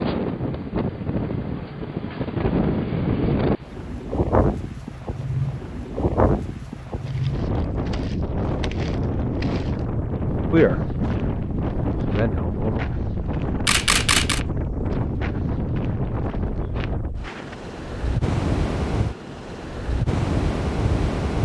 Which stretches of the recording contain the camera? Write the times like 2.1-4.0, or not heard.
13.7-14.4.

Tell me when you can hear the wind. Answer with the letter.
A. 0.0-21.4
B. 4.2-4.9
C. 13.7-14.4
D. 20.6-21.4
A.